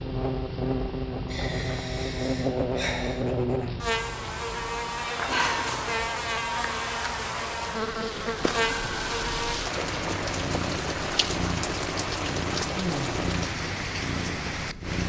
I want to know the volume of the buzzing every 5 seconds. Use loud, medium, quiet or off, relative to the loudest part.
loud, loud, off.